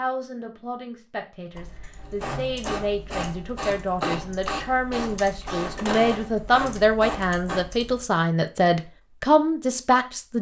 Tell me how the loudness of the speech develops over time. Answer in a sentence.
The loudness of the speech goes up.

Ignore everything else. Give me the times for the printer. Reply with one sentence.
You can hear the printer from 2.0 to 7.7 s.